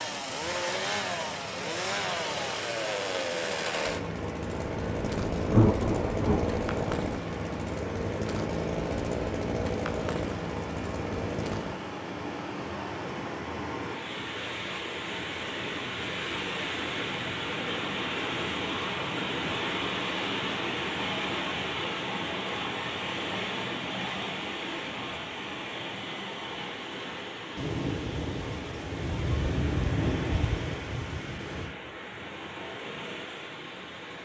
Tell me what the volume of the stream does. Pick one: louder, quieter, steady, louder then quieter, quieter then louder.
louder then quieter.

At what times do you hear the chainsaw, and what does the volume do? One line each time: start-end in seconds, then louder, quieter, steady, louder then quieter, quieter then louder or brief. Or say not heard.
0.0-11.8 steady.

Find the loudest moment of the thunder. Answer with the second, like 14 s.
6 s.